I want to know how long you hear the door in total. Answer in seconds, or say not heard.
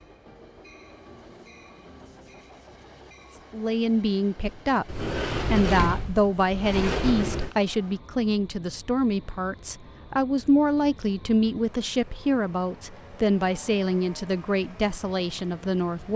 3 s.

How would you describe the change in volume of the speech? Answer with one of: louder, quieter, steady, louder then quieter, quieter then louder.
steady.